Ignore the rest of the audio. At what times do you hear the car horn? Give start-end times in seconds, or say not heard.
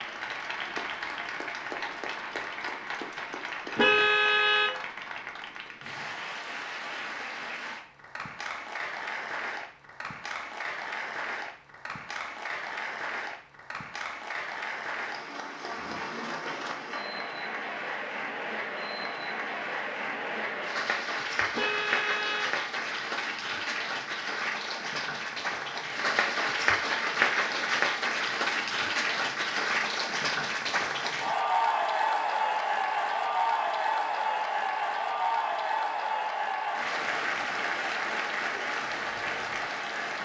3.8-4.7, 21.5-22.6.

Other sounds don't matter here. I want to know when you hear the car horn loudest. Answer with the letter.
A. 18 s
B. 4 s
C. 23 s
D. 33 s
B.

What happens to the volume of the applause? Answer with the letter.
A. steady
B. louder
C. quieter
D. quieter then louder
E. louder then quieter
B.